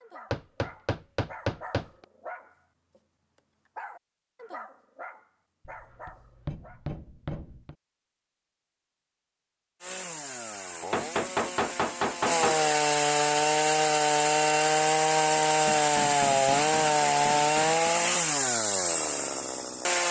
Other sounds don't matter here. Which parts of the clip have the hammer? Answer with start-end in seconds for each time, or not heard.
0.3-2.0, 5.7-7.8, 10.9-12.6, 15.7-17.9.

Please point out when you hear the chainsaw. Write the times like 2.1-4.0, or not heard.
9.8-20.0.